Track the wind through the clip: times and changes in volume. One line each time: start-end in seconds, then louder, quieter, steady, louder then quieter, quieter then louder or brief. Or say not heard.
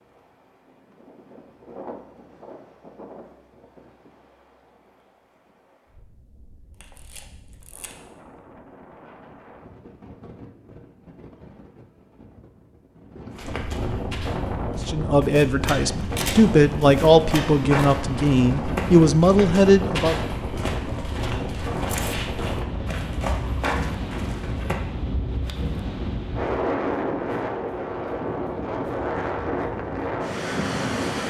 0.0-31.2 louder.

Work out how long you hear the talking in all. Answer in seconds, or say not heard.
5 s.